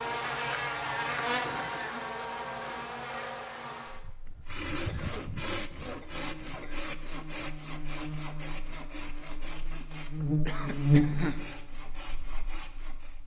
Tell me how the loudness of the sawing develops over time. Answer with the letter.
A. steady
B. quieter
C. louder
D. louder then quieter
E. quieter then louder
B.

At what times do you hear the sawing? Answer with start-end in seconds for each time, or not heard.
4.0-13.2.